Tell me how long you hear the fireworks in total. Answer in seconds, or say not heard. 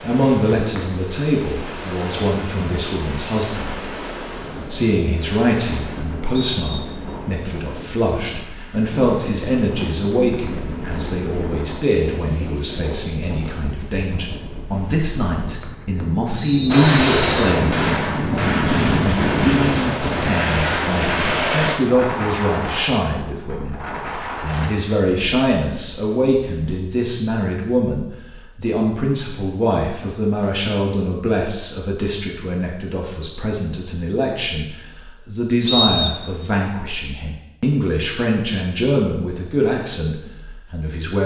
5 s.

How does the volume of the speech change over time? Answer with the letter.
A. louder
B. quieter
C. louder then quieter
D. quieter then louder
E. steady
E.